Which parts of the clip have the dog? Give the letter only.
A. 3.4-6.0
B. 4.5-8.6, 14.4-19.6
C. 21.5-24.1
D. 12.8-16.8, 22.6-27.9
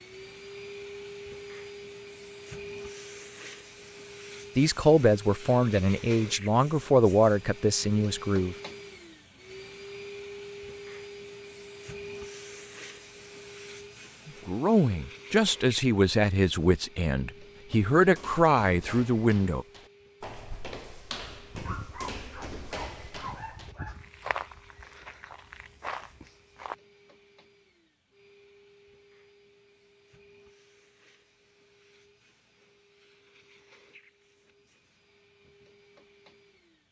C.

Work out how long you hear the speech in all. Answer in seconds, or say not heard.
9 s.